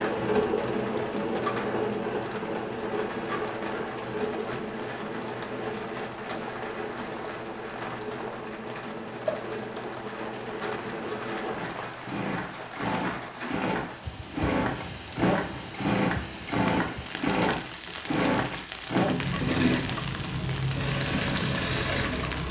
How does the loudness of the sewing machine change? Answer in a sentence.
The loudness of the sewing machine goes down, then up.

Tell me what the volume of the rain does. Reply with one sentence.
The volume of the rain stays about the same.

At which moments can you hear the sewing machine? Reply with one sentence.
The sewing machine can be heard from 0.0 to 22.4 s.